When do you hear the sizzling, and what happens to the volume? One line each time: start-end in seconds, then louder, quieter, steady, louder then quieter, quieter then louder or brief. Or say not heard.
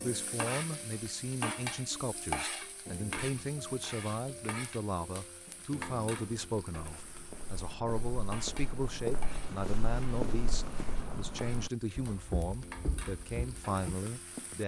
0.0-14.6 quieter.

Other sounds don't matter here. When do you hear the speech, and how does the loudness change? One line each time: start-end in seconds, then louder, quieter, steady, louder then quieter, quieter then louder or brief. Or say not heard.
0.0-14.6 steady.